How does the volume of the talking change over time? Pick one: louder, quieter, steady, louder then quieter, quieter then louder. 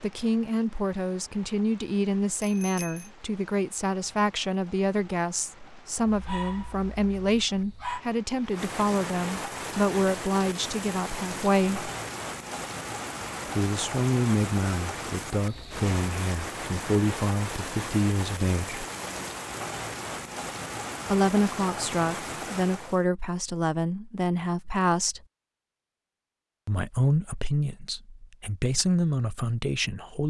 steady.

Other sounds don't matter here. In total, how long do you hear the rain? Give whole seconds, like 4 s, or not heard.
23 s.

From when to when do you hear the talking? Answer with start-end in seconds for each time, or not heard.
0.0-11.9, 13.6-18.9, 21.1-25.2, 26.6-30.2.